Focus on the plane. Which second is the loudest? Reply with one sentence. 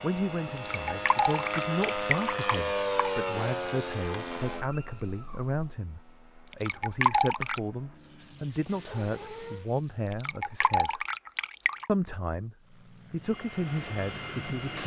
The loudest moment of the plane is at 3 seconds.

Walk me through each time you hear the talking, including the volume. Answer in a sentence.
The talking can be heard from 0.0 to 11.1 s, at a steady volume; and briefly from 11.8 to 14.8 s.